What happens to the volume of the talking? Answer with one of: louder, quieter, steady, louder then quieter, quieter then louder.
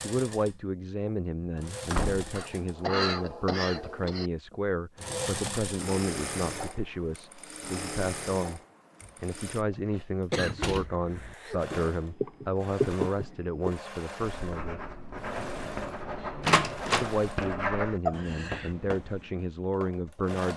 steady.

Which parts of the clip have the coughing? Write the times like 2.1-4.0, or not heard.
2.4-4.3, 10.3-11.6, 18.1-18.7.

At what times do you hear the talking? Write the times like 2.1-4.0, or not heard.
0.0-8.6, 9.2-14.8, 17.0-20.5.